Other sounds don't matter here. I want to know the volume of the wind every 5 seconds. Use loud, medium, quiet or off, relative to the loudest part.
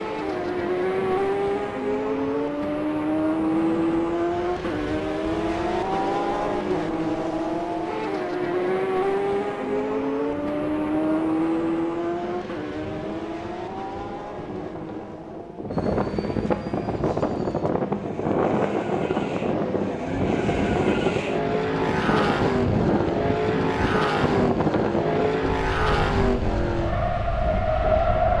quiet, quiet, quiet, loud, loud, medium.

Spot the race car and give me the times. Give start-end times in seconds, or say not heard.
0.0-28.3.